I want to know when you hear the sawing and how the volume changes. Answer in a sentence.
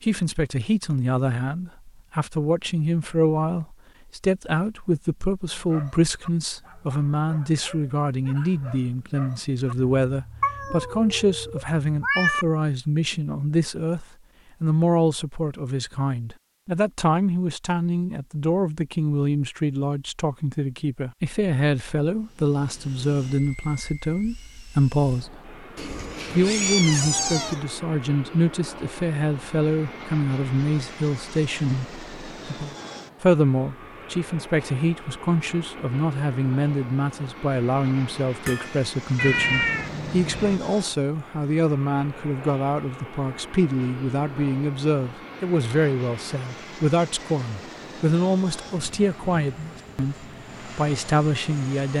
You can't hear the sawing here.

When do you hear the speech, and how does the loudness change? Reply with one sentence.
The speech can be heard from 0.0 to 25.6 s, at a steady volume; and from 26.3 to 51.9 s, at a steady volume.